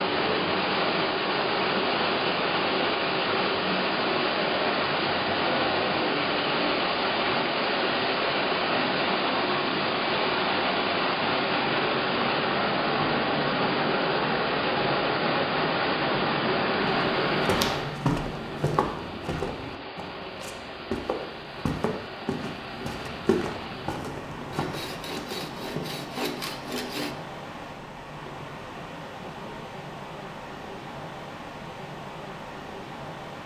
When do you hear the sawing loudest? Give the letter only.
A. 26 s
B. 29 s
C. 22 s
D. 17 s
A.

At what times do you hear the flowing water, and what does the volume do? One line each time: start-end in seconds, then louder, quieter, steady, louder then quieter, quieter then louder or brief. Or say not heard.
0.0-33.4 quieter.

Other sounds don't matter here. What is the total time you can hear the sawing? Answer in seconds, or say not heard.
3 s.